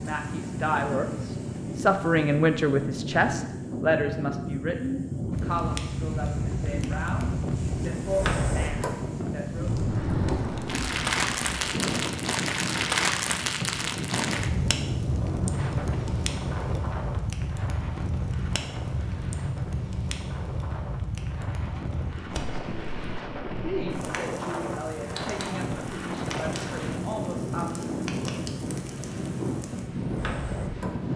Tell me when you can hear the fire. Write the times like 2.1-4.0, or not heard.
5.3-31.1.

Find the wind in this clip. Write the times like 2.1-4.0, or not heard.
0.0-31.1.